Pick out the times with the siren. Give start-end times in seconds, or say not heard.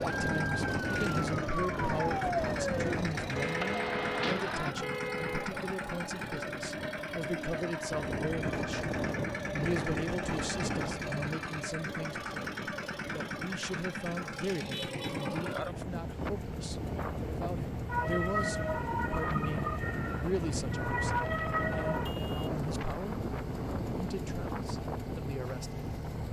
0.0-4.8, 17.9-22.1.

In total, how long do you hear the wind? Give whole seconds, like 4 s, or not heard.
26 s.